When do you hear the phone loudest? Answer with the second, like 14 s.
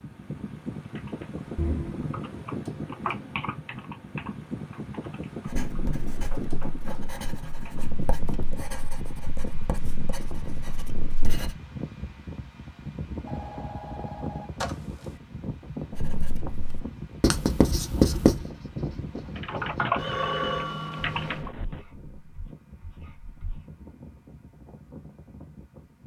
20 s.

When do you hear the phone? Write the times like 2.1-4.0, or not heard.
1.6-2.1, 13.2-15.2, 19.9-21.5.